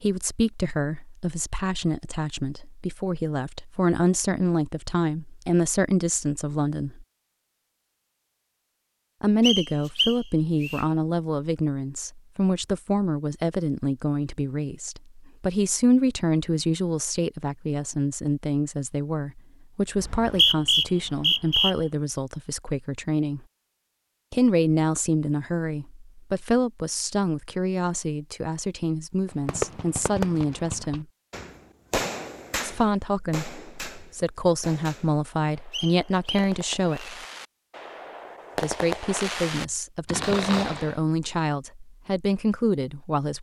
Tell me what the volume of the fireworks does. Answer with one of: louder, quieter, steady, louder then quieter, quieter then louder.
quieter then louder.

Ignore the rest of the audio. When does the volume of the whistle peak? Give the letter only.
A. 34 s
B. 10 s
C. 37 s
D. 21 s
D.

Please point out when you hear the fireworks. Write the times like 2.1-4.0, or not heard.
29.2-41.0.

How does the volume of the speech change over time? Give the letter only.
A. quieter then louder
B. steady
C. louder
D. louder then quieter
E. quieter
B.